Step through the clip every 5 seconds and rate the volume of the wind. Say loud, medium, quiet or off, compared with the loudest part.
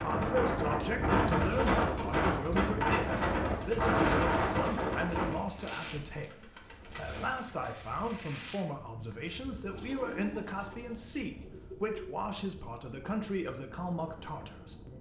loud, quiet, quiet.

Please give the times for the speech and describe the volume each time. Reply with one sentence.
The speech can be heard from 0.0 to 14.9 s, at a steady volume.